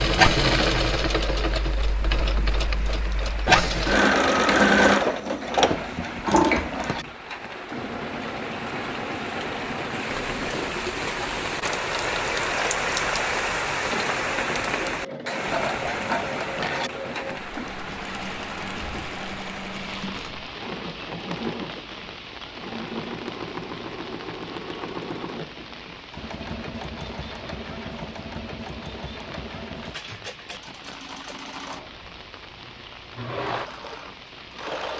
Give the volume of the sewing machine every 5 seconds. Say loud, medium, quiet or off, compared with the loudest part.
loud, medium, quiet, quiet, quiet, quiet, quiet.